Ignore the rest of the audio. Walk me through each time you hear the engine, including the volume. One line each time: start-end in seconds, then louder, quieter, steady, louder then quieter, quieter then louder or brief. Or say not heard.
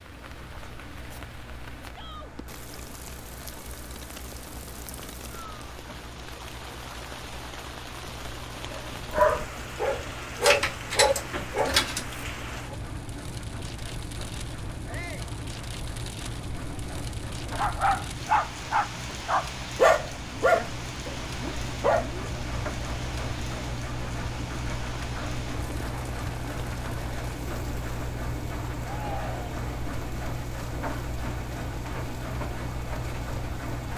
0.0-33.9 louder.